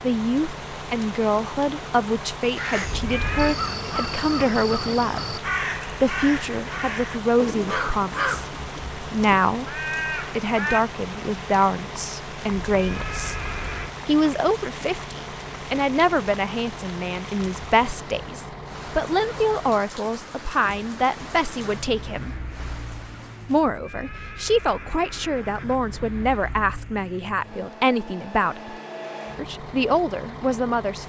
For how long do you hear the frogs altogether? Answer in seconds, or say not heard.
not heard.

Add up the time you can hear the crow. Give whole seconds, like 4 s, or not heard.
8 s.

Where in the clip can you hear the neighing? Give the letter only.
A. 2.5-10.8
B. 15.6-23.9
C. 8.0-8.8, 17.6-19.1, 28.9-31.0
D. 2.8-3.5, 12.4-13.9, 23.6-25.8
D.